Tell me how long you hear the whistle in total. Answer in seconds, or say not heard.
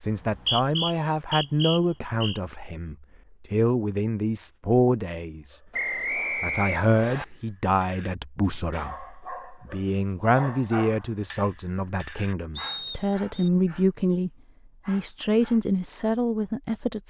5 s.